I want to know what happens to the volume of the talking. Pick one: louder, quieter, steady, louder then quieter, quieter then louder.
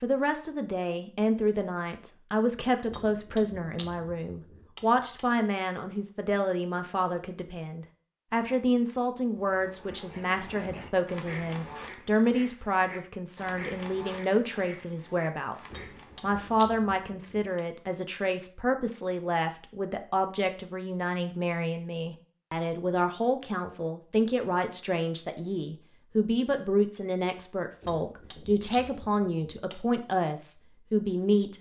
steady.